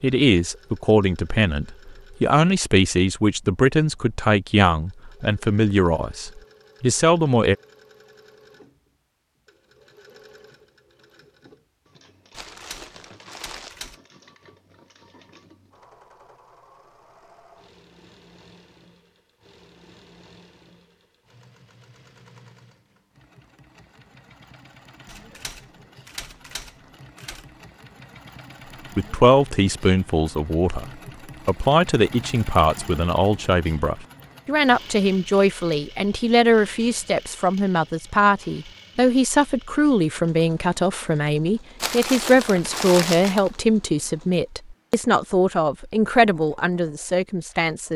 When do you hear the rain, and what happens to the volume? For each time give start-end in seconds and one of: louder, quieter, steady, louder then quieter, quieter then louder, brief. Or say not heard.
not heard.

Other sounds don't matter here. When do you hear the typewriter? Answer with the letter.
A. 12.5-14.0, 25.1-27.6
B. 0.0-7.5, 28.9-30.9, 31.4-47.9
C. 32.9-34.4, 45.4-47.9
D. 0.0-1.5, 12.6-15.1
A.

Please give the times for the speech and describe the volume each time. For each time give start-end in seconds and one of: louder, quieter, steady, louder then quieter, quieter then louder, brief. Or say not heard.
0.0-7.5 steady
28.9-30.9 brief
31.4-47.9 steady.